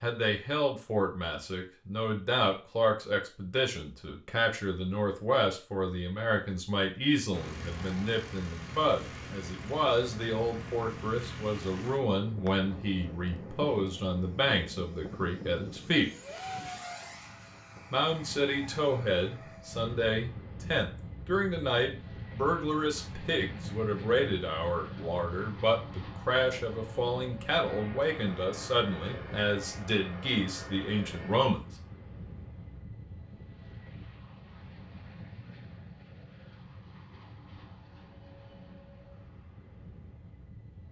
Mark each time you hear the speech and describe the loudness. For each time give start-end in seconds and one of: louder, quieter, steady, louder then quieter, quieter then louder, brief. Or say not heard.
0.0-16.1 steady
17.9-31.6 steady.